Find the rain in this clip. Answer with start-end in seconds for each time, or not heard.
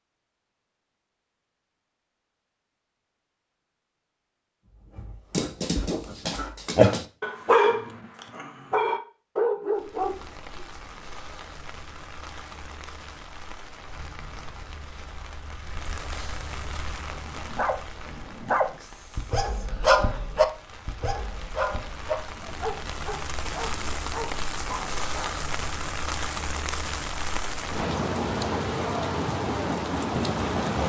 9.7-30.8.